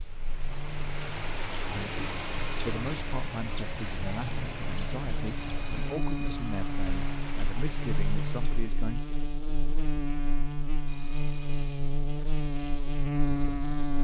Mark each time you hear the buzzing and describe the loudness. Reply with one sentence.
The buzzing can be heard from 0.0 to 13.9 s, getting louder.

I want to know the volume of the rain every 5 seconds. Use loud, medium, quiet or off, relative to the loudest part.
loud, medium, off.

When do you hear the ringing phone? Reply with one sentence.
You can hear the ringing phone from 1.6 to 3.0 s, from 5.3 to 6.7 s and from 10.8 to 11.8 s.